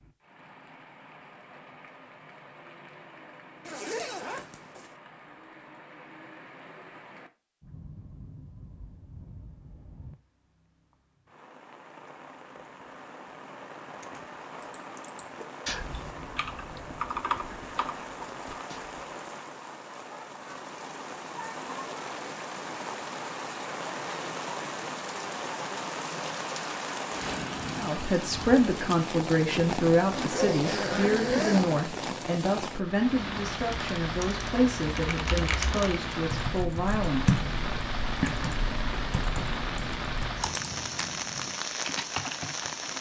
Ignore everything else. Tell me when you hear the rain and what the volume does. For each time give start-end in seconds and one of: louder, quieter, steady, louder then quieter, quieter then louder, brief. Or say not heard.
0.0-42.9 louder.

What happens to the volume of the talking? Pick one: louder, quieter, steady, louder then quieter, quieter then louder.
quieter.